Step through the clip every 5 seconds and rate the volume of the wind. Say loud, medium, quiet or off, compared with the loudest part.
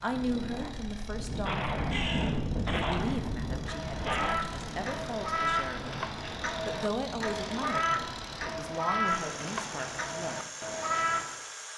loud, medium, off.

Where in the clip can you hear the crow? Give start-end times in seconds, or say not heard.
1.9-11.3.